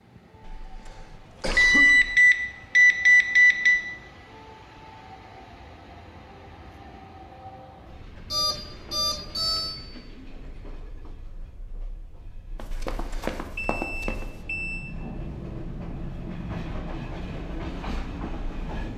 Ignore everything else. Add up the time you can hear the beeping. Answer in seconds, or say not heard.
5 s.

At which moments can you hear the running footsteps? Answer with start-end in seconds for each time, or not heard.
12.6-14.4.